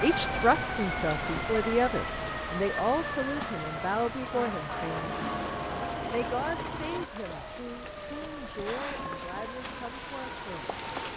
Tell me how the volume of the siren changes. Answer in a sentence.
The loudness of the siren goes down.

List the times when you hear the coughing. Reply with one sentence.
You can't hear the coughing here.